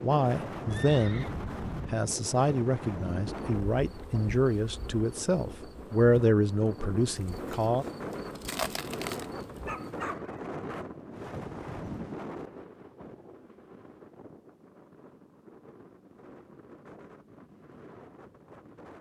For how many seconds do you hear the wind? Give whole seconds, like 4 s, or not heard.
19 s.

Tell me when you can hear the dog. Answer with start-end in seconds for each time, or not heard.
9.7-10.5.